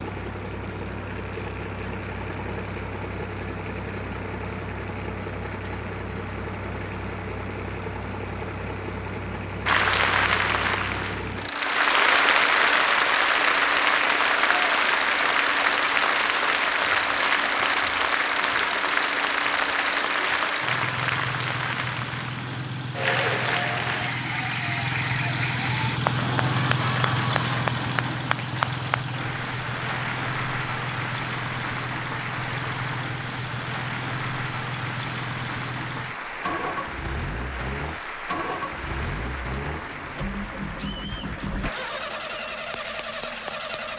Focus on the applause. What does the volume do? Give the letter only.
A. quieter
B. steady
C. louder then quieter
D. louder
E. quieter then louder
A.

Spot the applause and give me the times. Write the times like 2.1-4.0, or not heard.
9.7-43.9.